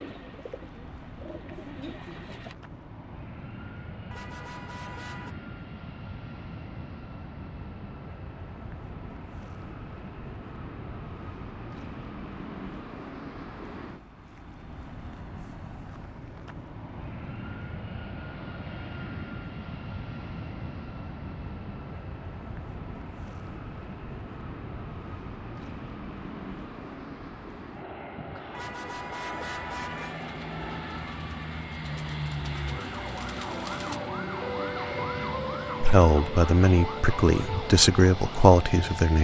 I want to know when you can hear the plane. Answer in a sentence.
You can hear the plane from 0.0 to 39.1 s.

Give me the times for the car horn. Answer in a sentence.
You can hear the car horn from 4.1 to 5.3 s and from 28.5 to 30.1 s.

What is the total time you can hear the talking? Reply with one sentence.
You can hear the talking for 3 seconds altogether.